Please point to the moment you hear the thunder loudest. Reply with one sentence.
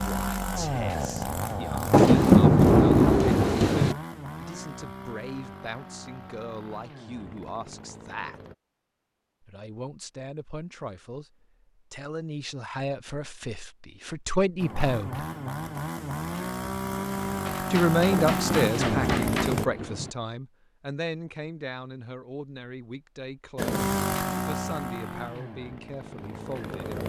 The loudest moment of the thunder is at 2 seconds.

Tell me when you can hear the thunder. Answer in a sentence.
You can hear the thunder from 1.9 to 4.0 s and from 18.1 to 20.1 s.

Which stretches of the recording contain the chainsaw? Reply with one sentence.
The chainsaw can be heard from 0.0 to 8.6 s, from 14.6 to 19.7 s and from 23.6 to 27.0 s.